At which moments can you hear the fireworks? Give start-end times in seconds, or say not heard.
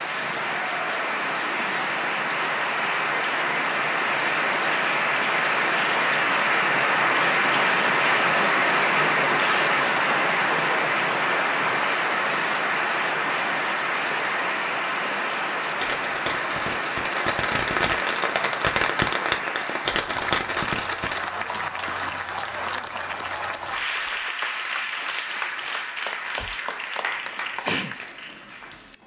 15.8-21.1.